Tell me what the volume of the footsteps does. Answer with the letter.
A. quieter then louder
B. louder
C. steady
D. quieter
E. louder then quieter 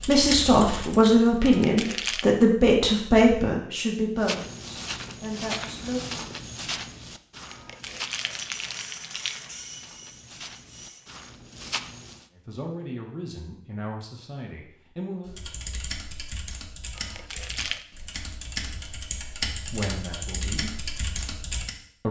A.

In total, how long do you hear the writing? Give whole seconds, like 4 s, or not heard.
not heard.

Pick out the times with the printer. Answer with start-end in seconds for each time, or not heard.
8.1-11.2.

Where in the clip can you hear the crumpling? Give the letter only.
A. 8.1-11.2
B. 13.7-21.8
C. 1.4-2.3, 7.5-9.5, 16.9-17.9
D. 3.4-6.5
C.